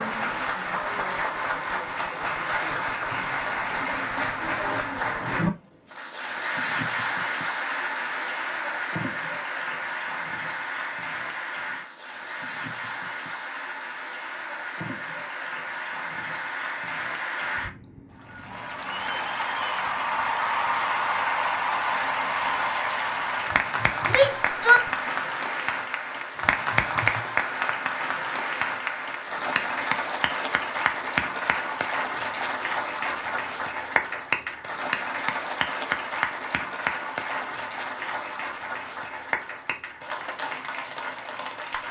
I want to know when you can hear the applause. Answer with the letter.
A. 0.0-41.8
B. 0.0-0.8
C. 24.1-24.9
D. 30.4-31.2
A.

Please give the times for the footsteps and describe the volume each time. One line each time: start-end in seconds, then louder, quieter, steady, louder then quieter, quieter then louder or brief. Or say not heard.
not heard.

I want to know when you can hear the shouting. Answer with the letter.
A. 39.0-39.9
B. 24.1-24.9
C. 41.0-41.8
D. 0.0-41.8
B.